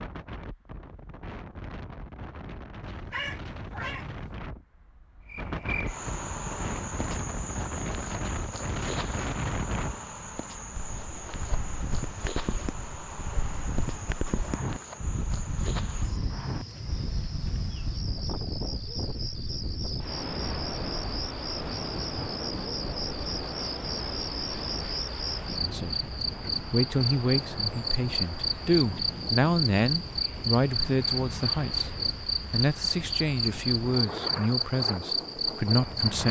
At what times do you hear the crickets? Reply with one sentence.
You can hear the crickets from 5.2 to 36.2 s.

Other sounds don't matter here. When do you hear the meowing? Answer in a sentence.
The meowing can be heard from 2.8 to 4.4 s.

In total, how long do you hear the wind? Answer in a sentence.
The wind can be heard for 36 seconds in total.